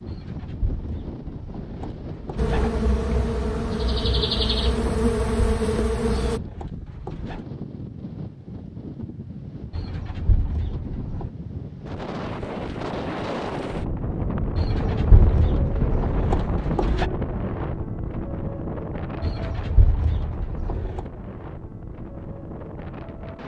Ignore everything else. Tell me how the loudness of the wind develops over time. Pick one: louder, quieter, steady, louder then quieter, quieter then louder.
louder then quieter.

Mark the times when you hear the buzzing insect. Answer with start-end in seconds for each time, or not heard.
2.4-6.4.